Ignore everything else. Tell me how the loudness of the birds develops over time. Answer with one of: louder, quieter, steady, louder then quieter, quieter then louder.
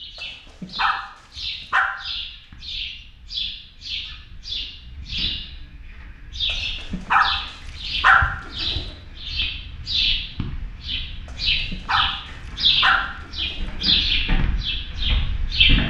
louder.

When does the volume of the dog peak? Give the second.
8 s.